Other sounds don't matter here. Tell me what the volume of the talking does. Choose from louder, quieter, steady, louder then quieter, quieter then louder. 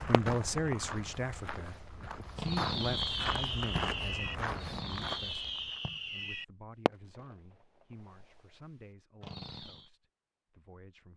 quieter.